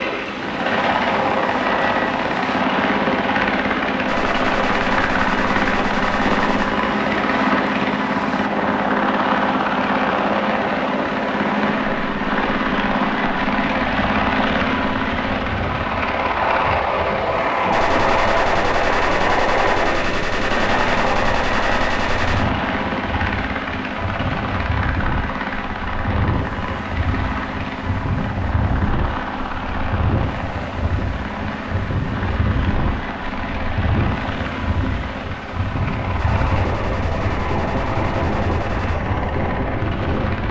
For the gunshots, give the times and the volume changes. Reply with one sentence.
The gunshots can be heard briefly from 4.0 to 6.8 s; from 17.7 to 22.5 s, at a steady volume; and briefly from 36.1 to 39.0 s.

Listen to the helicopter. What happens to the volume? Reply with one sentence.
The loudness of the helicopter goes down.